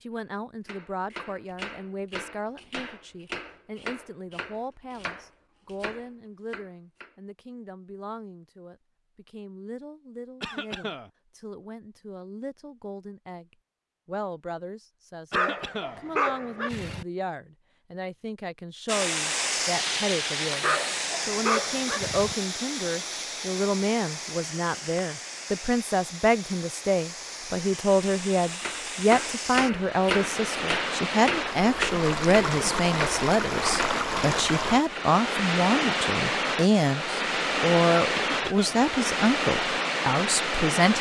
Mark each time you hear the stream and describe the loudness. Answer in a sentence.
You can hear the stream from 18.9 to 40.9 s, getting quieter then louder.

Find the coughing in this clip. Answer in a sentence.
The coughing can be heard from 10.4 to 11.1 s, from 15.3 to 16.0 s and from 38.1 to 38.9 s.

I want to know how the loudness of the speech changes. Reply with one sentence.
The loudness of the speech goes up.